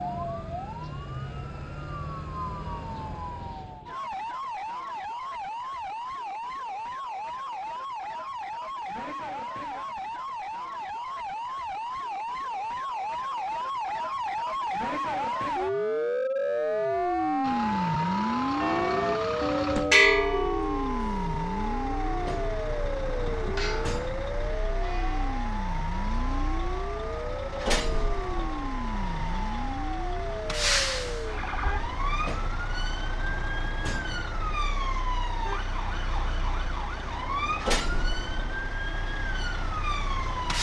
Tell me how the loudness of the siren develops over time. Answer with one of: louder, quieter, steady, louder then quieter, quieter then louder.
louder then quieter.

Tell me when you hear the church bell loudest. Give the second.
20 s.